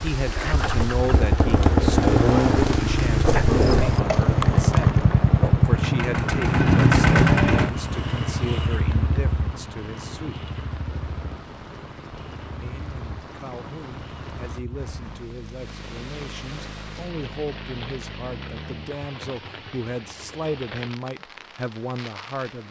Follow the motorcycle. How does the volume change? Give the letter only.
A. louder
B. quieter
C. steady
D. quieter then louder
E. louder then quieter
B.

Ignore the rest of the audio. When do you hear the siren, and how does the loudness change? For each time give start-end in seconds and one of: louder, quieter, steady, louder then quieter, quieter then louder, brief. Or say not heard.
not heard.